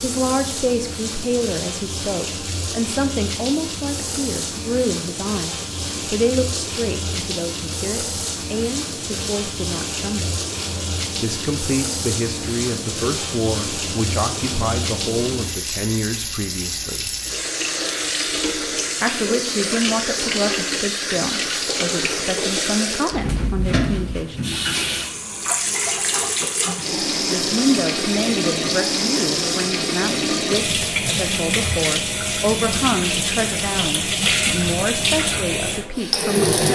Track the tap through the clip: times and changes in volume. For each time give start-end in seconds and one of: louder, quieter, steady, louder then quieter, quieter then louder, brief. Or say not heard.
0.0-36.7 louder.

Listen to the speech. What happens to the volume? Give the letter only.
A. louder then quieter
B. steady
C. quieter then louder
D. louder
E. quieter
B.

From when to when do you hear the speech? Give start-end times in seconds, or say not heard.
0.0-10.3, 11.2-17.1, 19.0-24.6, 26.9-36.7.